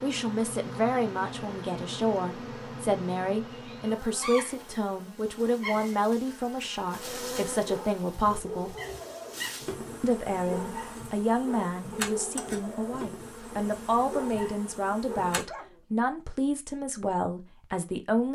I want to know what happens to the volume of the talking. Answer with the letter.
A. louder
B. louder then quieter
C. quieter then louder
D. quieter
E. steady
E.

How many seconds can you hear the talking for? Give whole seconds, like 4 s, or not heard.
17 s.